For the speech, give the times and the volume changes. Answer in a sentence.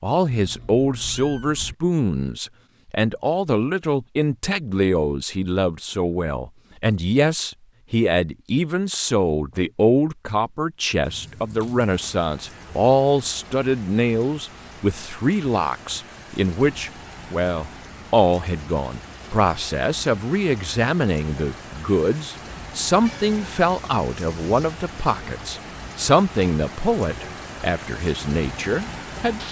You can hear the speech from 0.0 to 29.4 s, at a steady volume.